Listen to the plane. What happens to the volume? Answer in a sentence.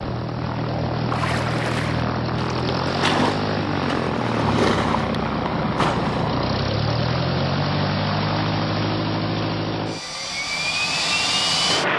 The volume of the plane stays about the same.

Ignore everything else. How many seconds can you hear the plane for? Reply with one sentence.
The plane can be heard for 12 seconds in total.